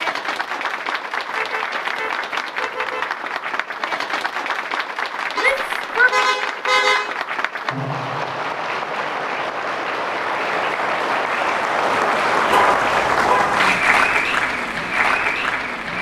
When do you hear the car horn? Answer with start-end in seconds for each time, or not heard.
1.3-3.1, 5.3-7.2, 12.5-13.6.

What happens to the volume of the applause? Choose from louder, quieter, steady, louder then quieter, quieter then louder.
louder.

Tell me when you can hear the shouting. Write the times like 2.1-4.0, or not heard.
5.3-6.1.